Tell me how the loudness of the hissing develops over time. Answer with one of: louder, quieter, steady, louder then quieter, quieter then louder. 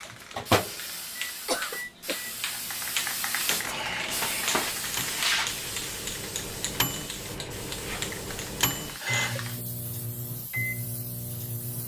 louder then quieter.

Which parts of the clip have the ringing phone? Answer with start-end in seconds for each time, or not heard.
not heard.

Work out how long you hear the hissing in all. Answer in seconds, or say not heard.
12 s.